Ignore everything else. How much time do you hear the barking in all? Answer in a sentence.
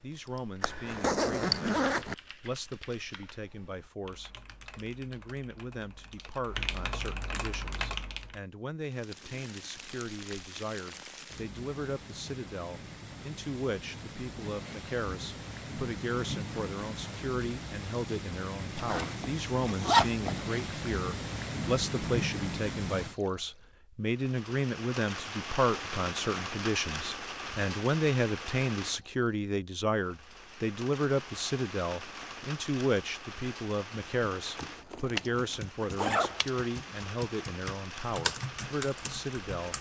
The barking can't be heard in this clip.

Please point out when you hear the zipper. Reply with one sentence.
The zipper can be heard from 0.6 to 2.1 s, from 18.8 to 20.3 s and from 34.5 to 36.5 s.